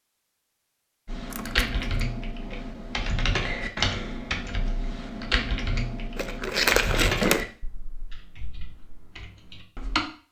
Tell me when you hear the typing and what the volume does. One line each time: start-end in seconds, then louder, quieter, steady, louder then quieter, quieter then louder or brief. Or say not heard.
1.1-10.0 quieter.